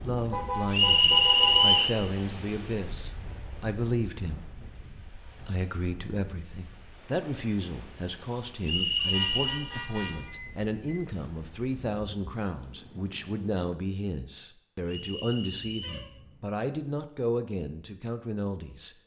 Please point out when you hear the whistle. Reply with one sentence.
The whistle can be heard from 0.7 to 1.9 s, from 8.6 to 9.6 s and from 14.8 to 16.1 s.